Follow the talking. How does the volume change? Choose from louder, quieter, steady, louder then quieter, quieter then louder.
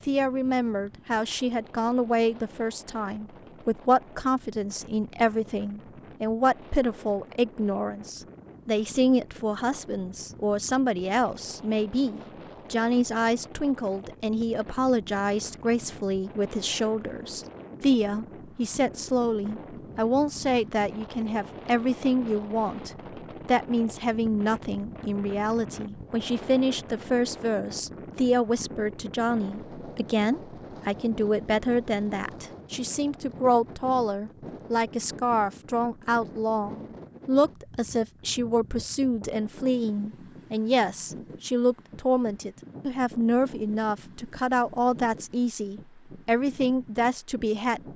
steady.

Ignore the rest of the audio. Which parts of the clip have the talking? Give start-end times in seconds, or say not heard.
0.1-47.9.